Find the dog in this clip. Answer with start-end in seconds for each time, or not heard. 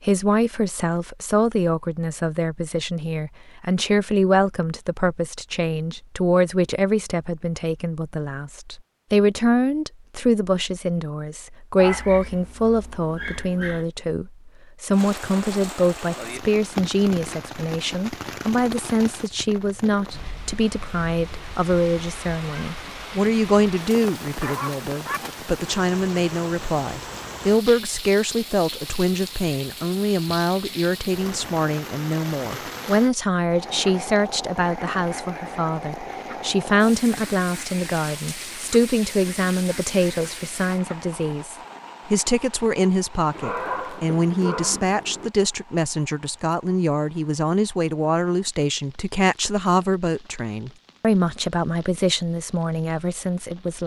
11.8-13.8, 24.4-25.2, 43.3-45.3.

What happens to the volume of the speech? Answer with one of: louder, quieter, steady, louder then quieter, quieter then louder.
steady.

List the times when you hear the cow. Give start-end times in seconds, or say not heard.
not heard.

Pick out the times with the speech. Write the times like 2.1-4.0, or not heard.
0.0-53.8.